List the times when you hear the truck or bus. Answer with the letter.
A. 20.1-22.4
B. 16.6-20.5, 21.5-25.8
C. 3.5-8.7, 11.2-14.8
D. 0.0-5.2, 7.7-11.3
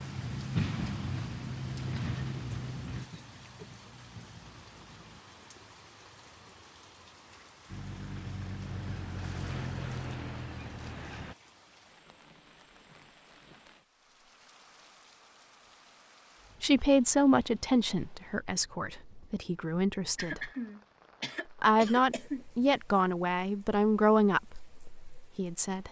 D.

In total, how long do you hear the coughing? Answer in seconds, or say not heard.
2 s.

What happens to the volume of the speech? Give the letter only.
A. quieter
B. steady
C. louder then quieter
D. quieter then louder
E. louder
D.